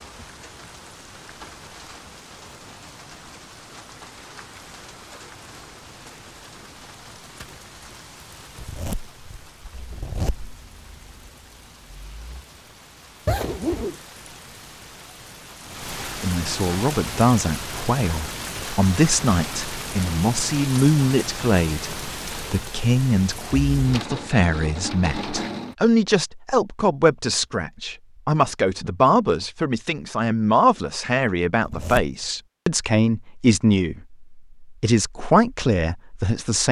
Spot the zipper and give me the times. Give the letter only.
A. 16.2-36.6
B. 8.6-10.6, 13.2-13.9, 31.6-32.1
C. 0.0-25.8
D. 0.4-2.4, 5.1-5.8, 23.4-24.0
B.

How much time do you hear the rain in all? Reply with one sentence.
You can hear the rain for 26 seconds altogether.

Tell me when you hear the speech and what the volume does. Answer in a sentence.
You can hear the speech from 16.2 to 36.6 s, at a steady volume.